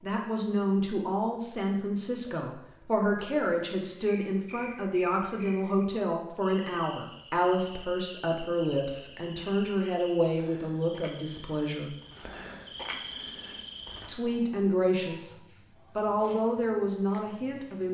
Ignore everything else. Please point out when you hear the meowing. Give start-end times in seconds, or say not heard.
not heard.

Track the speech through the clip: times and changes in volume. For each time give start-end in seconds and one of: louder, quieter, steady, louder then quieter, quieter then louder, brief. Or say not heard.
0.0-11.9 steady
14.1-15.3 brief
15.9-17.8 brief.